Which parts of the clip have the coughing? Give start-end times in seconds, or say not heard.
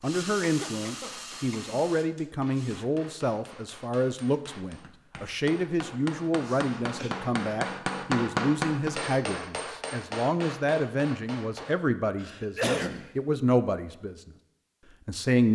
0.4-1.8, 6.4-7.2, 12.2-13.1.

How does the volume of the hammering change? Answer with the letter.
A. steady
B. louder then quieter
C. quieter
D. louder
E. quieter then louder
B.